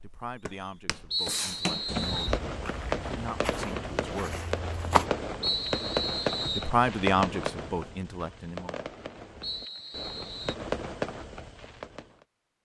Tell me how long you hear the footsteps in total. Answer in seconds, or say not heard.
5 s.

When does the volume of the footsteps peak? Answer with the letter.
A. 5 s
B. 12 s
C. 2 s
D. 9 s
A.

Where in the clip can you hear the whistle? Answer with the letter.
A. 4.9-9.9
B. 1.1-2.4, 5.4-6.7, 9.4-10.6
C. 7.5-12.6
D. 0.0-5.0
B.